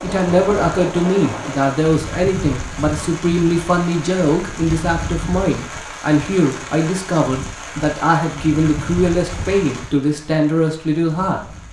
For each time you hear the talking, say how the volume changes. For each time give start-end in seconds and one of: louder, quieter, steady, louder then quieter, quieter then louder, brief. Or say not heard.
0.0-11.4 steady.